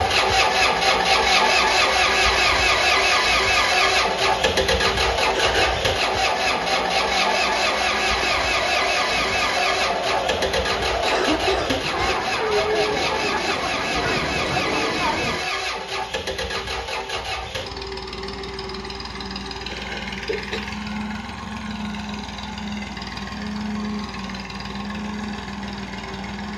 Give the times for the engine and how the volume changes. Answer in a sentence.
You can hear the engine from 0.0 to 26.5 s, getting quieter.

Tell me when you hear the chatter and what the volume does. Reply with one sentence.
The chatter can be heard from 0.0 to 15.5 s, getting louder.